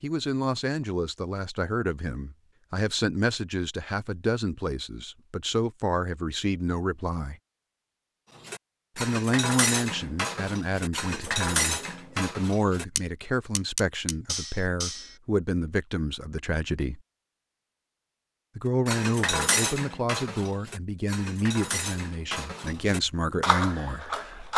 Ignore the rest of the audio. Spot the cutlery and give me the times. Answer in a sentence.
The cutlery can be heard from 8.3 to 15.2 s and from 18.9 to 24.5 s.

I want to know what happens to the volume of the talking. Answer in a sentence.
The loudness of the talking stays about the same.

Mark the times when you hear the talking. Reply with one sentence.
You can hear the talking from 0.0 to 7.3 s, from 8.9 to 17.0 s and from 18.6 to 24.5 s.